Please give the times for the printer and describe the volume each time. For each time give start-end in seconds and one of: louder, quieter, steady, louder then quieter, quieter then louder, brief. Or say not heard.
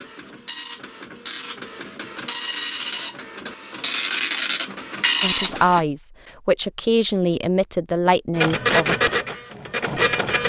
0.0-5.8 louder
8.3-10.4 brief.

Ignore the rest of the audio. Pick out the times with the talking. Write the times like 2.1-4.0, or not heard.
5.2-8.9.